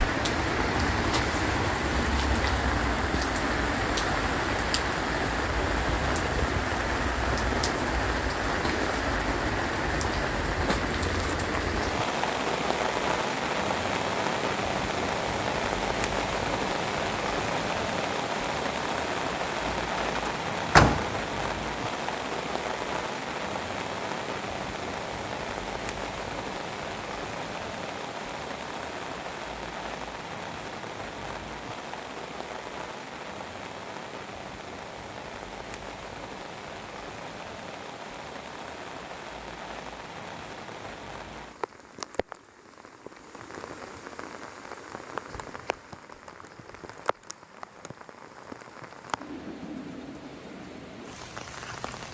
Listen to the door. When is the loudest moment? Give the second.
21 s.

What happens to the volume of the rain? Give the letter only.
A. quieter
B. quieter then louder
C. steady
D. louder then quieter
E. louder
A.